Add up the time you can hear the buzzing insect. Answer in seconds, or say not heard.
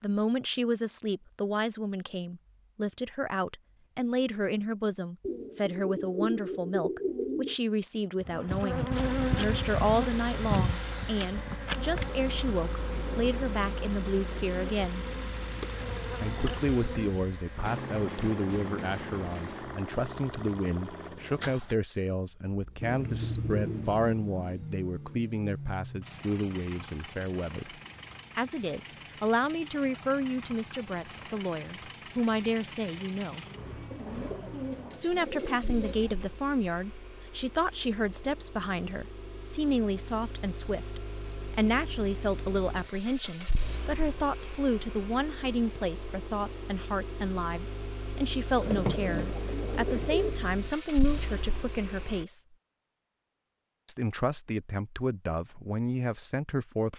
9 s.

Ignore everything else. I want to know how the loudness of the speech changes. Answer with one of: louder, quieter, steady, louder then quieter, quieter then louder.
steady.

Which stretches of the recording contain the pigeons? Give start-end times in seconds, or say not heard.
5.2-7.5, 22.8-24.4, 33.9-36.2, 48.6-50.4.